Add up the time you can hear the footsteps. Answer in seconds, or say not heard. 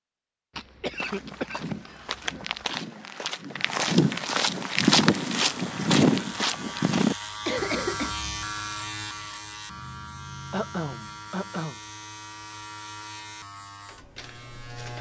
6 s.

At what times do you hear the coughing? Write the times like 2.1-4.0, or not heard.
0.6-2.8, 7.5-8.2, 10.5-11.8.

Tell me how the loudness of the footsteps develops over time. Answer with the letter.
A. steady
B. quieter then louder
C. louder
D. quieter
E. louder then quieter
C.